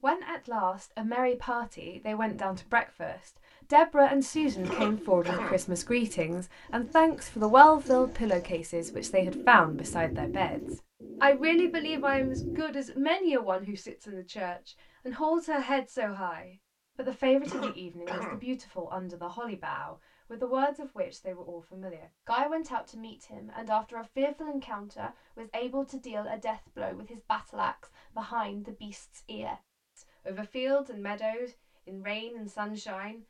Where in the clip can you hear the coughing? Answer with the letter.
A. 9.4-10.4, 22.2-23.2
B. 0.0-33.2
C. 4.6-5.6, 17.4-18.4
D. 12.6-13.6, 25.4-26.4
C.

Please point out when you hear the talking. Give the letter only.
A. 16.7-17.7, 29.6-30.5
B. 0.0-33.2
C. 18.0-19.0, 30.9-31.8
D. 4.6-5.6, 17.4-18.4
B.